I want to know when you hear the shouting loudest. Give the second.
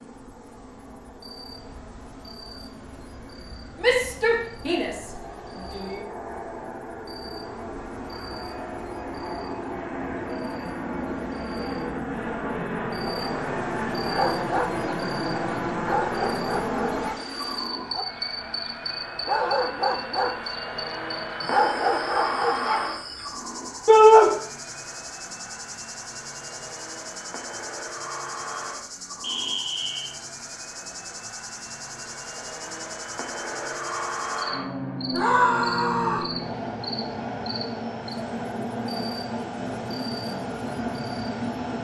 24 s.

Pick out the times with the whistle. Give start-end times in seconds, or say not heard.
29.2-30.1.